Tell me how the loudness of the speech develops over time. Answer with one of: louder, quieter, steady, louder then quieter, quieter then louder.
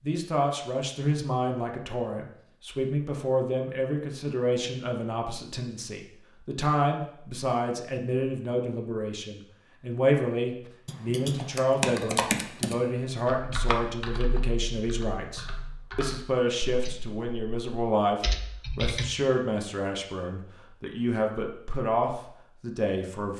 steady.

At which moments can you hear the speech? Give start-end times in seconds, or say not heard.
0.0-23.3.